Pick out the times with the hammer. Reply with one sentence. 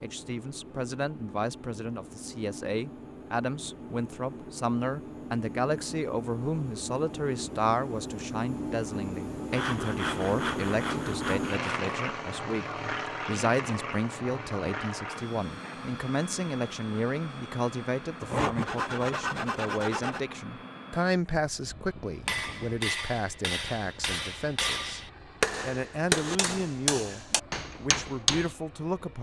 You can hear the hammer from 22.2 to 28.6 s.